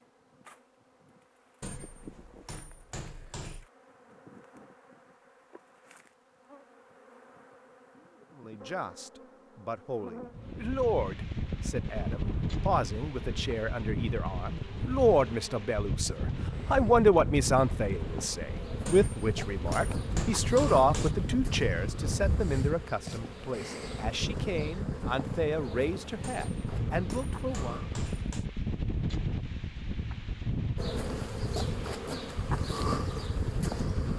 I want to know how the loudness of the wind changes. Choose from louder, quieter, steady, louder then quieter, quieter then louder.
steady.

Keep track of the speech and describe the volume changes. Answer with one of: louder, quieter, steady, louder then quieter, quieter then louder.
louder then quieter.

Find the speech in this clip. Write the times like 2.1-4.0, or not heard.
8.3-27.8.